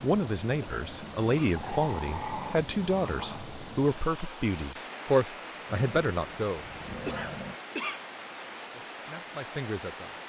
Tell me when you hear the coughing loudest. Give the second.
8 s.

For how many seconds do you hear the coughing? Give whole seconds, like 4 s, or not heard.
2 s.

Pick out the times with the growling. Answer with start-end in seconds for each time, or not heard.
1.6-3.5, 5.7-7.6.